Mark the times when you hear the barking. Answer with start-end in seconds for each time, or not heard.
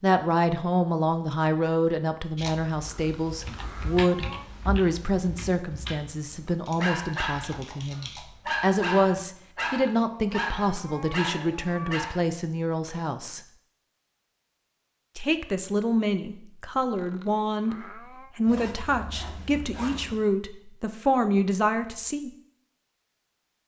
6.8-12.2.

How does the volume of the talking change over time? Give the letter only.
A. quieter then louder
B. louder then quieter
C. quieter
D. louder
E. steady
E.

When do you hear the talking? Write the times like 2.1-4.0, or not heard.
0.0-13.4, 15.2-22.3.